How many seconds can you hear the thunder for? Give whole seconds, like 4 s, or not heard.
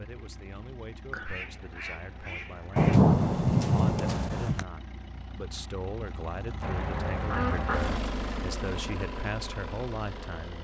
2 s.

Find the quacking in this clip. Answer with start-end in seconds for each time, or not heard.
1.1-3.0, 6.6-8.0.